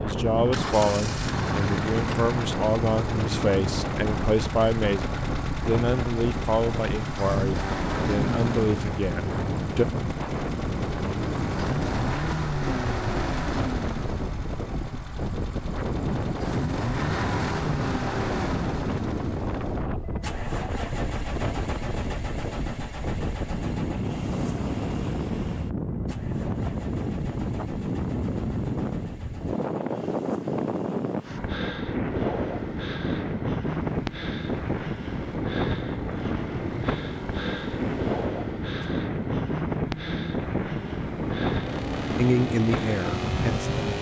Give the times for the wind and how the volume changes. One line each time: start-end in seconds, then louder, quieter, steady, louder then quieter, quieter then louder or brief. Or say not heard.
0.0-43.9 steady.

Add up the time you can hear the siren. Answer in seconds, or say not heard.
not heard.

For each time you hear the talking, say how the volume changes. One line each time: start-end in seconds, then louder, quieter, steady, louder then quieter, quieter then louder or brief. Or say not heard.
0.0-9.8 steady
42.1-43.8 brief.